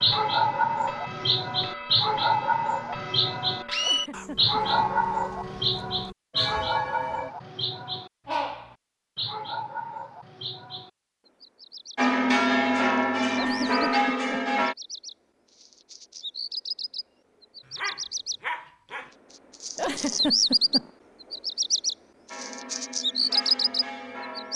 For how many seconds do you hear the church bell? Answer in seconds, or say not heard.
12 s.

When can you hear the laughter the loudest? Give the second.
20 s.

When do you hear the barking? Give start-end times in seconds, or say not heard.
17.6-19.1.